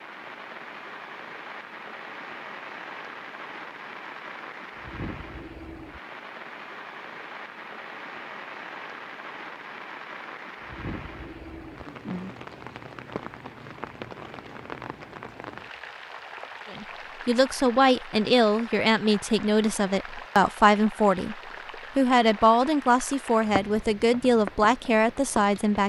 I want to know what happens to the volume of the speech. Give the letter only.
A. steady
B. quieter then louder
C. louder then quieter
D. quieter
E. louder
A.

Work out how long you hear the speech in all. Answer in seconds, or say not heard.
9 s.